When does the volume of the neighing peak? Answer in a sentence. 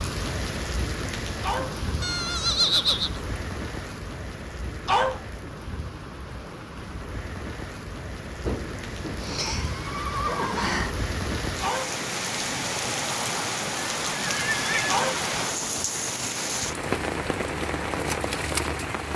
The volume of the neighing peaks at 3 seconds.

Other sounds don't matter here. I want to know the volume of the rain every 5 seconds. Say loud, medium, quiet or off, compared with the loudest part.
medium, medium, loud, loud.